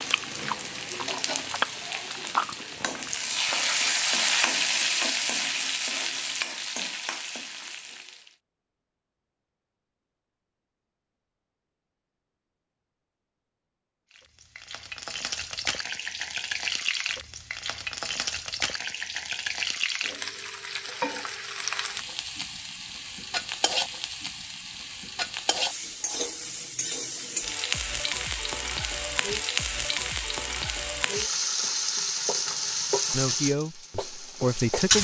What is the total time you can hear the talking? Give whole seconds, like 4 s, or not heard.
2 s.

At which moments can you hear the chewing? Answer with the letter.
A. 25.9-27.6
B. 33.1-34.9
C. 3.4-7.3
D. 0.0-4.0
D.